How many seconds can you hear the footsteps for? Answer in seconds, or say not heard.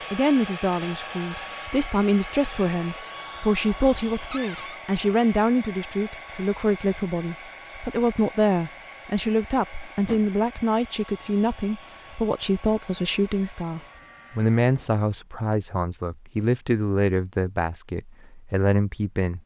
not heard.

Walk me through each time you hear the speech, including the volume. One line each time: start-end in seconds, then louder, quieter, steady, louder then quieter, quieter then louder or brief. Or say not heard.
0.1-19.4 steady.